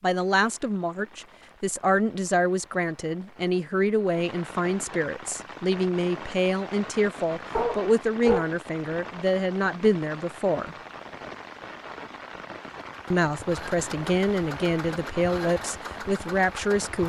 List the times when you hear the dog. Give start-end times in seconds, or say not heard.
7.5-9.1.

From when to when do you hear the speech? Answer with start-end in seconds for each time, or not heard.
0.0-10.8, 13.1-17.0.